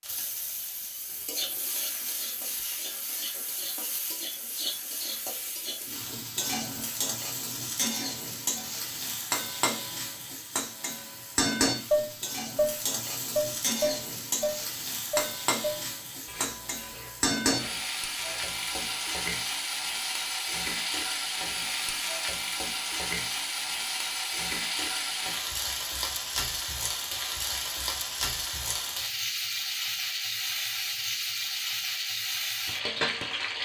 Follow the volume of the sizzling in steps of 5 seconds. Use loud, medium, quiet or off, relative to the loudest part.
medium, loud, loud, loud, loud, loud, loud.